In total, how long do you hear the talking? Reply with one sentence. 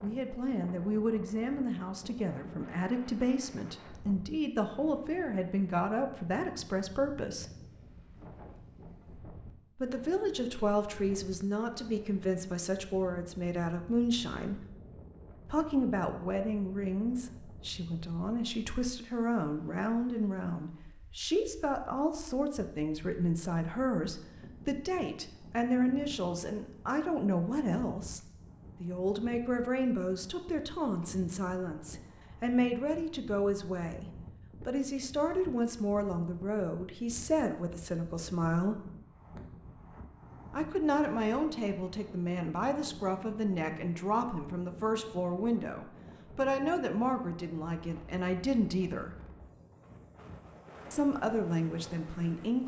The talking can be heard for 46 seconds in total.